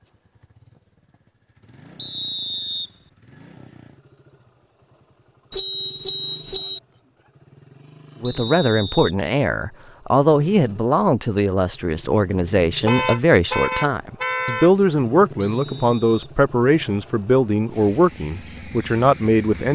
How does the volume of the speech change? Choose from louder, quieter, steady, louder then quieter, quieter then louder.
steady.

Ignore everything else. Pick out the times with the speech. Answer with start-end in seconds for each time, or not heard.
8.2-19.7.